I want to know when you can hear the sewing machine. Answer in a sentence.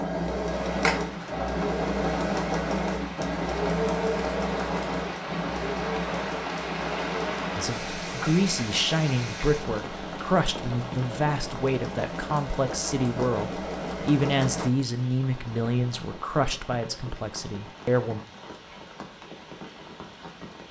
The sewing machine can be heard from 0.0 to 14.7 s.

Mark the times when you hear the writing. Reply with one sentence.
The writing can't be heard in this clip.